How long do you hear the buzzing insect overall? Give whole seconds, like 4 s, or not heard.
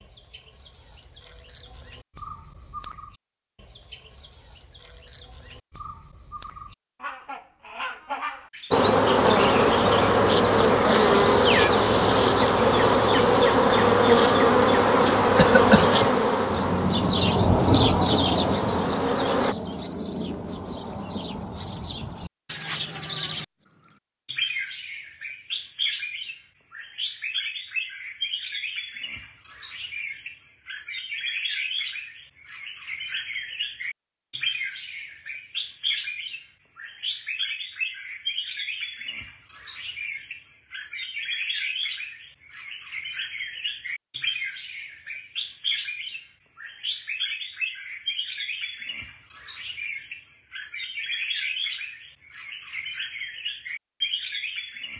11 s.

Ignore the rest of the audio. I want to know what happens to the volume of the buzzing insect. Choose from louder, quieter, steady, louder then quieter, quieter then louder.
quieter.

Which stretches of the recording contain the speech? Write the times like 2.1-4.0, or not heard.
not heard.